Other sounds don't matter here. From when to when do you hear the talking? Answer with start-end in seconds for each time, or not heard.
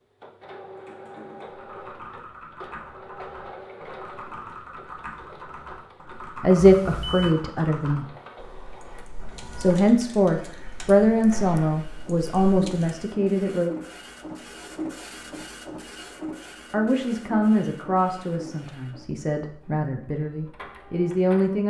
6.2-8.1, 9.6-13.8, 16.7-21.6.